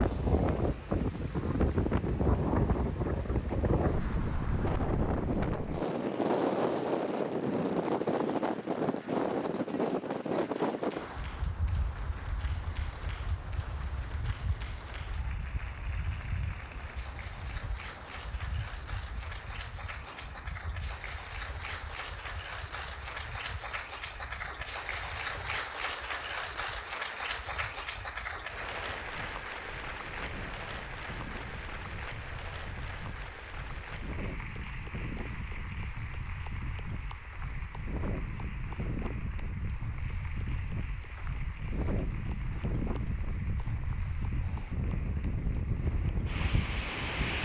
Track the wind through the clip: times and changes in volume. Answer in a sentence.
You can hear the wind from 0.0 to 47.3 s, getting quieter then louder.